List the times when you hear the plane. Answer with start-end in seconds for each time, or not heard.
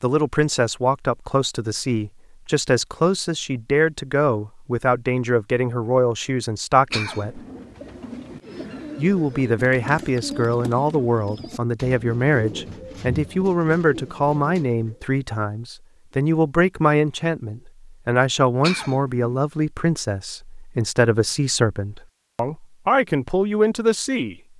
not heard.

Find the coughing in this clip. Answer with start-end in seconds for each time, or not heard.
6.9-7.7, 18.6-19.4.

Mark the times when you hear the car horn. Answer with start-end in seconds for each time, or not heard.
not heard.